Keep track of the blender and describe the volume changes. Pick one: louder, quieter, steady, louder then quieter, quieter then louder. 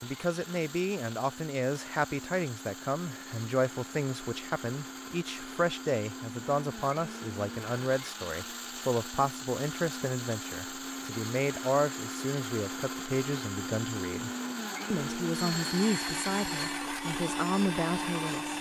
louder.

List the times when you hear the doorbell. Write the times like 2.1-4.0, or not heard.
15.3-16.9.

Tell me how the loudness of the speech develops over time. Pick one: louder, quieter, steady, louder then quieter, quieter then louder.
steady.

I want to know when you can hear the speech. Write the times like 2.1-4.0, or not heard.
0.0-14.3, 14.9-18.5.